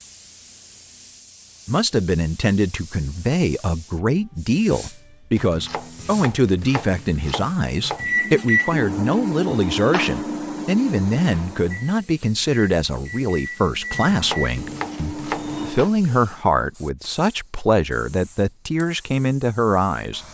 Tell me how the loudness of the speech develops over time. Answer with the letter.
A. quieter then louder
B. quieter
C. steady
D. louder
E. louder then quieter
C.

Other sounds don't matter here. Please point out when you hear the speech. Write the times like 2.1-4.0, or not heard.
1.6-20.2.